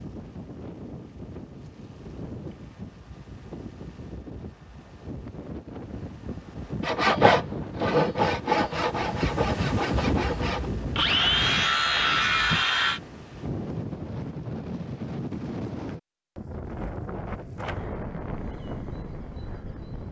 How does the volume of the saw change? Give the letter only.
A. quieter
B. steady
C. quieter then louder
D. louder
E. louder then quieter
C.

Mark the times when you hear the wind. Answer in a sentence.
You can hear the wind from 0.0 to 20.0 s.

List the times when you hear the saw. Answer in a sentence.
You can hear the saw from 6.8 to 13.0 s.